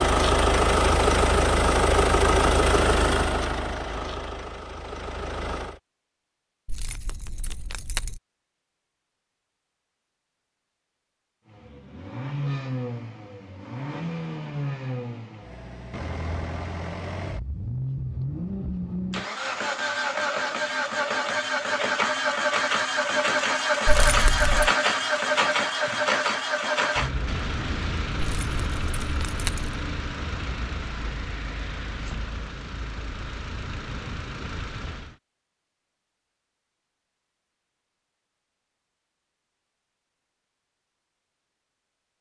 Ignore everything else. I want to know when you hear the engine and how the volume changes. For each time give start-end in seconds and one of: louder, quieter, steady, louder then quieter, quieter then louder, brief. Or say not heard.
0.0-5.8 quieter
11.4-35.1 louder then quieter.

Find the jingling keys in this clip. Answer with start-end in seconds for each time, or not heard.
6.7-8.2, 23.9-24.7, 28.1-29.8.